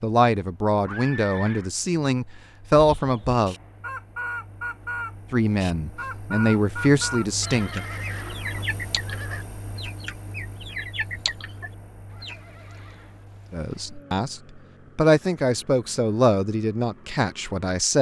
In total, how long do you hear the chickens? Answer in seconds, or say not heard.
10 s.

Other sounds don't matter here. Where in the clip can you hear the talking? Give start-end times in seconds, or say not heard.
0.0-3.5, 5.3-7.8, 13.5-17.9.